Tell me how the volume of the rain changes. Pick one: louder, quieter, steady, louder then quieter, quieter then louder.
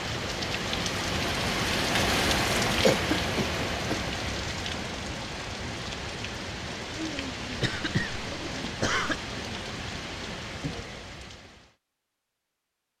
quieter.